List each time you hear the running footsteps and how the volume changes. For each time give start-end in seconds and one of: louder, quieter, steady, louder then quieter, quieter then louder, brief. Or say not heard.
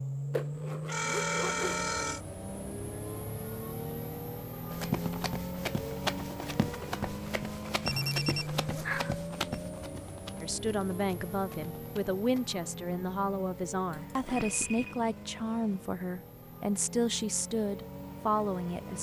4.7-12.4 quieter.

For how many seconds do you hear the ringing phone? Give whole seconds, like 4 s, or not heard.
4 s.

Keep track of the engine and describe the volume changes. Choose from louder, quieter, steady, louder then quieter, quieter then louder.
quieter.